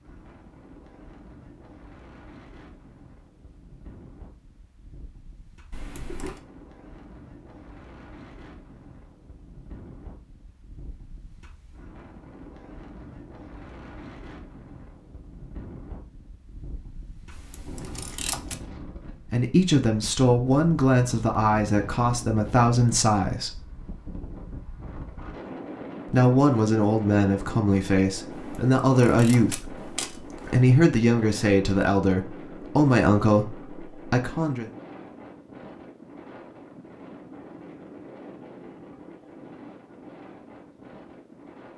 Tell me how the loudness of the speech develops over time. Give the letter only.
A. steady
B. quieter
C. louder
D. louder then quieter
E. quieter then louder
A.